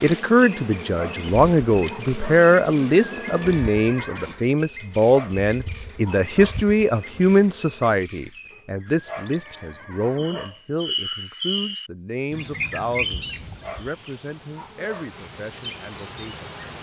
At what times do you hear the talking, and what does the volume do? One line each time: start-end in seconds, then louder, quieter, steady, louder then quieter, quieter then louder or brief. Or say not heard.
0.0-16.5 quieter.